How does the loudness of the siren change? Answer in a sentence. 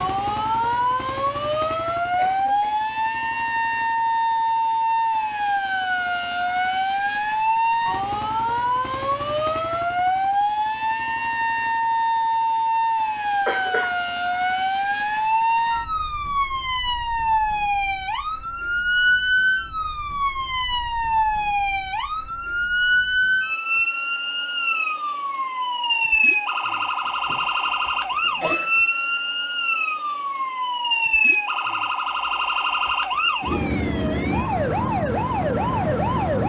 The loudness of the siren stays about the same.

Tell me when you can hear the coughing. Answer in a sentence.
You can hear the coughing from 2.1 to 2.8 s, from 13.4 to 13.9 s and from 26.7 to 28.7 s.